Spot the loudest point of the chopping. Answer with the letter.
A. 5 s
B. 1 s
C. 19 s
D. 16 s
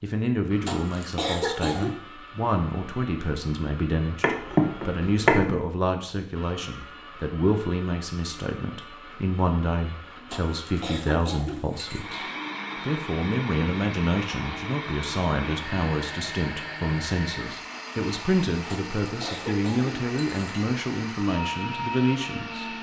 A.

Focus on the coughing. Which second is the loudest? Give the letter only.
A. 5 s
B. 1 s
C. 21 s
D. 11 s
B.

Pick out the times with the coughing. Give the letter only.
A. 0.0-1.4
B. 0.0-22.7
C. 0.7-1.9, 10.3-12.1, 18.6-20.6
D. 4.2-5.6
C.